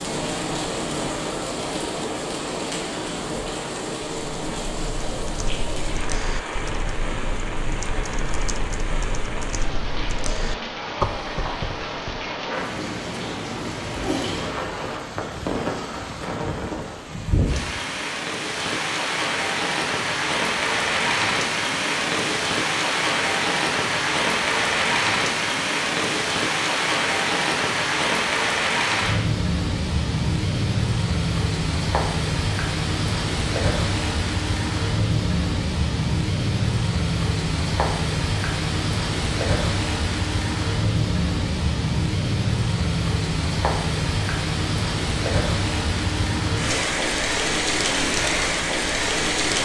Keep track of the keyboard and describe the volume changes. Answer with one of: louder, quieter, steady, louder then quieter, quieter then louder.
louder.